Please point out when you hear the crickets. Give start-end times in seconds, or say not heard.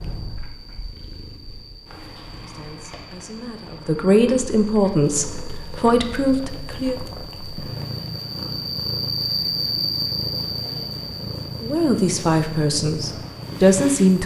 0.0-14.2.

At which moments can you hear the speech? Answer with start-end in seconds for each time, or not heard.
2.4-7.0, 11.6-14.2.